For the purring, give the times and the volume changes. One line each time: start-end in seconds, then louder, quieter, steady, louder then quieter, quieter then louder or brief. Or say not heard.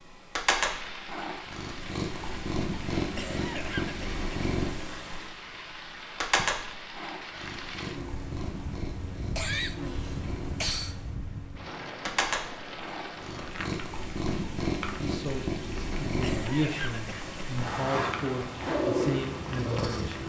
0.0-20.2 quieter then louder.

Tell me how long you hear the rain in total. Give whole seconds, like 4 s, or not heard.
20 s.